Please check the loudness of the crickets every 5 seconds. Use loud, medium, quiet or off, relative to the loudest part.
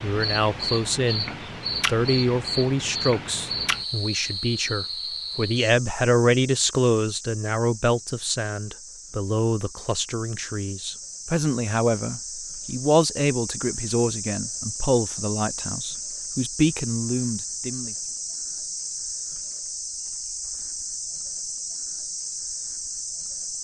loud, medium, medium, loud, loud.